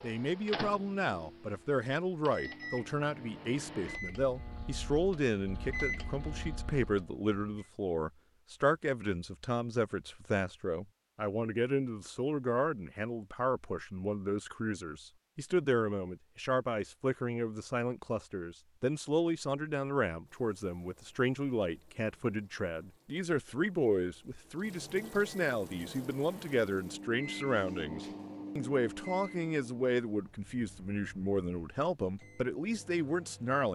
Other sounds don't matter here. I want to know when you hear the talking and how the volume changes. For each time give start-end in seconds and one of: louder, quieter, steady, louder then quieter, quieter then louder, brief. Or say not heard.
0.0-33.7 steady.